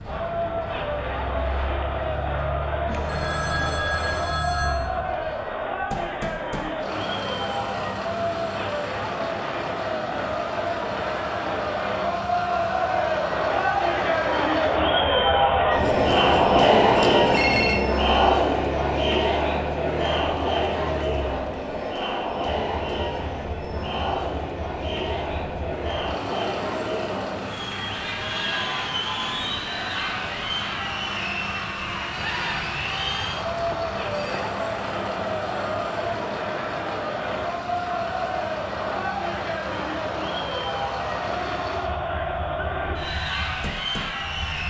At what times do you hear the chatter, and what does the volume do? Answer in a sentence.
You can hear the chatter from 0.0 to 44.6 s, getting louder then quieter.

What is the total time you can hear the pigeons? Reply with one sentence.
You can't hear the pigeons here.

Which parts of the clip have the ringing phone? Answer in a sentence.
The ringing phone can be heard from 2.9 to 4.8 s, from 15.8 to 17.8 s and from 32.1 to 34.5 s.